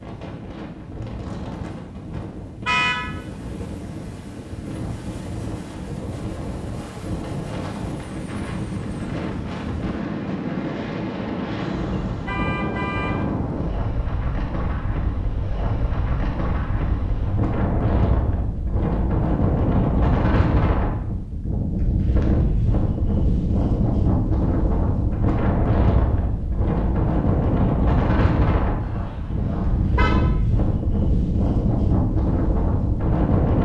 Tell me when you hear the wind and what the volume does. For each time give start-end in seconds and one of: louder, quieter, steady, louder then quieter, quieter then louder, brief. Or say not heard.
0.0-33.6 louder.